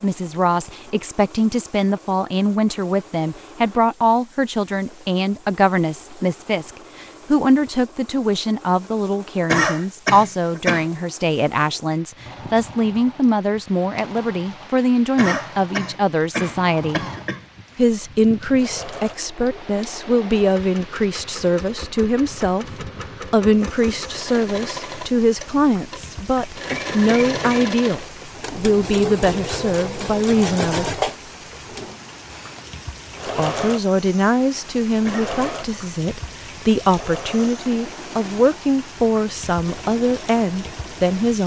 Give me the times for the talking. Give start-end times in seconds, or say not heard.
0.0-17.1, 17.8-30.9, 33.2-41.4.